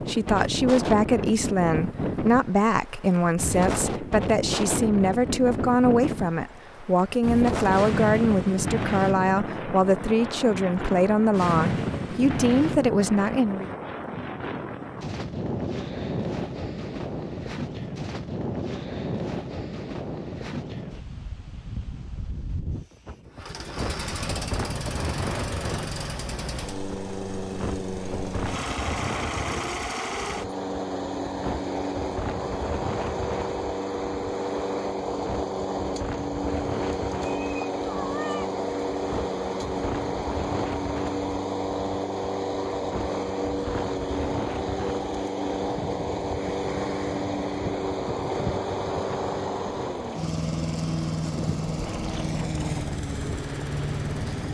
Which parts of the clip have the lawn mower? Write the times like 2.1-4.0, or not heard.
23.3-54.4.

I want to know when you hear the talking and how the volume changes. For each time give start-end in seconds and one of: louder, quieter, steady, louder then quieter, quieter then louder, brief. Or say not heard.
0.0-13.7 steady.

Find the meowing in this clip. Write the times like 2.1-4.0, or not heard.
37.3-38.5.